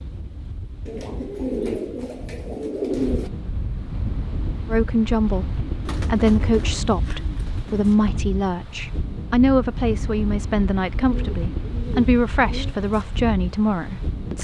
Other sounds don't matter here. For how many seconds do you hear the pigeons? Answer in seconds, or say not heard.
6 s.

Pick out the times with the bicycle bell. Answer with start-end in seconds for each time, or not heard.
not heard.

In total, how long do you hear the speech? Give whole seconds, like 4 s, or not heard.
10 s.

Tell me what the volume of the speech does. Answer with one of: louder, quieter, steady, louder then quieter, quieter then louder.
steady.